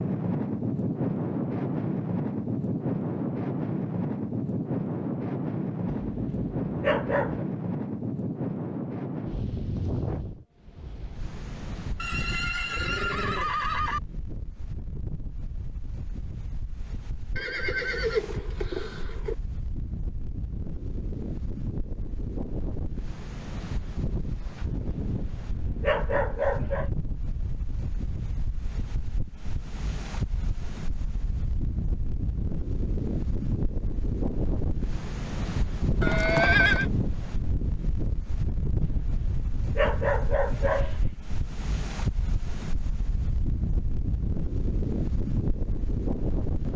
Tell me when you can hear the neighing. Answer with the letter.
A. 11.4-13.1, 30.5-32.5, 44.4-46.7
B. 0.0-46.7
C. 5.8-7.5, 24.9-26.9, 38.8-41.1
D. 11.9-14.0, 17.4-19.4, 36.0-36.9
D.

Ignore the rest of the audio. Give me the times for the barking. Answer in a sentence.
You can hear the barking from 5.8 to 7.5 s, from 24.9 to 26.9 s and from 38.8 to 41.1 s.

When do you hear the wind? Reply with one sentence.
You can hear the wind from 0.0 to 46.7 s.